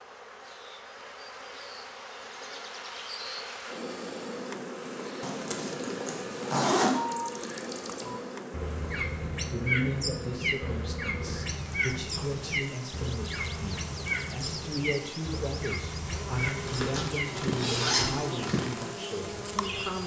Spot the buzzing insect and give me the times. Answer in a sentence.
You can hear the buzzing insect from 0.0 to 20.0 s.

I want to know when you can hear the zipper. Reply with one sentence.
You can hear the zipper from 5.2 to 7.0 s and from 16.5 to 18.2 s.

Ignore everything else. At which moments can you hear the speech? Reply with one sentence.
You can hear the speech from 9.5 to 20.0 s.